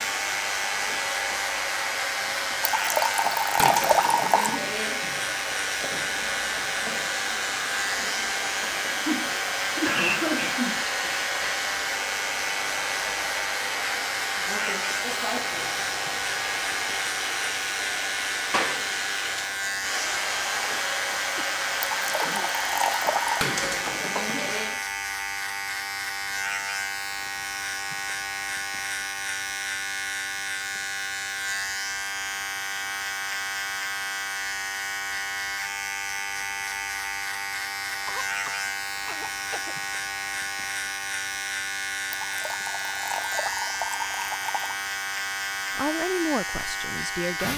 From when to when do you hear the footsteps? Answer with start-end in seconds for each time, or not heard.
not heard.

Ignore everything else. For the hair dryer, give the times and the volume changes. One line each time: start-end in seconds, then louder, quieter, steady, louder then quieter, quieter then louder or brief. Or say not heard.
0.0-24.9 steady.